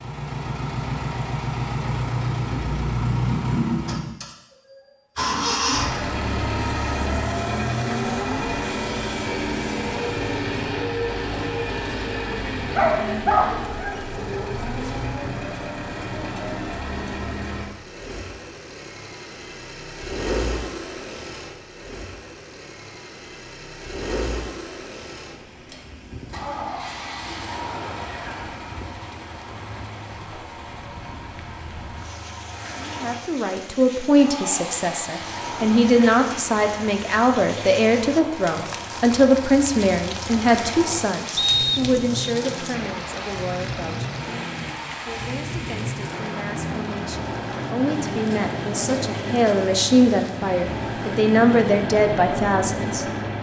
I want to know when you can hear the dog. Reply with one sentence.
You can hear the dog from 12.6 to 14.0 s.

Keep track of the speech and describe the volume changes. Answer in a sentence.
The volume of the speech goes down, then up.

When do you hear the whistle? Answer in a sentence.
You can hear the whistle from 41.4 to 42.3 s.